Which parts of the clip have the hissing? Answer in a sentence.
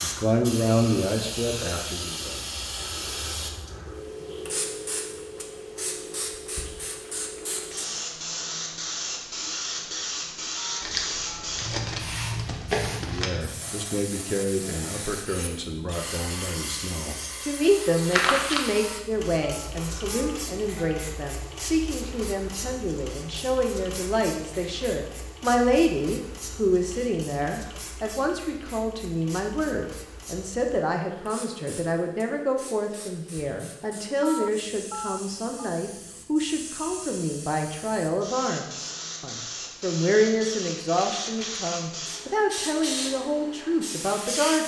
You can hear the hissing from 0.0 to 44.6 s.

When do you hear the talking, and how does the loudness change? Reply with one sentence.
You can hear the talking briefly from 0.0 to 2.4 s; and from 12.9 to 44.6 s, at a steady volume.